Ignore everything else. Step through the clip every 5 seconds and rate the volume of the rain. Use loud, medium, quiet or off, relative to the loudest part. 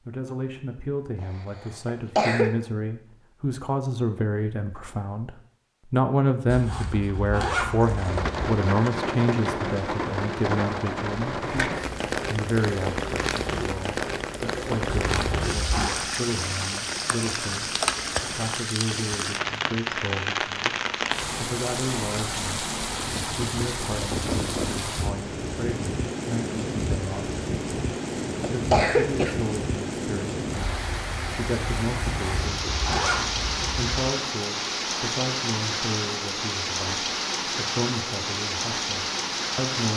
off, loud, loud, loud, loud, loud, loud, loud.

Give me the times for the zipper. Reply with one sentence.
You can hear the zipper from 6.5 to 8.2 s, from 14.8 to 16.0 s and from 32.0 to 33.8 s.